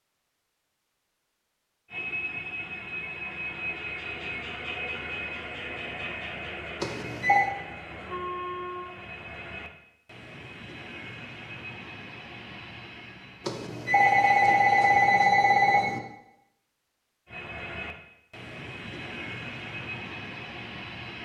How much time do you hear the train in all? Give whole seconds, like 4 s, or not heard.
17 s.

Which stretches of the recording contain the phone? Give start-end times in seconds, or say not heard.
6.8-7.5, 13.4-16.0.